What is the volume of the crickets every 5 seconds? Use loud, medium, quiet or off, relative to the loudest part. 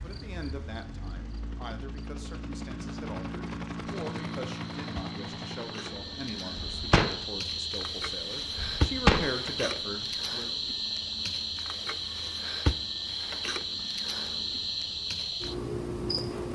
quiet, loud, loud, loud.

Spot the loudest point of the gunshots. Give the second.
9 s.